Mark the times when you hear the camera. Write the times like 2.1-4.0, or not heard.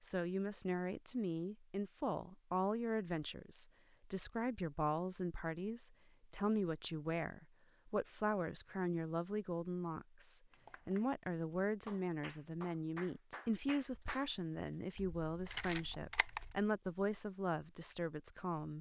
14.9-16.6.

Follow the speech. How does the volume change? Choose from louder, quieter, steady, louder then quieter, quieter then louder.
steady.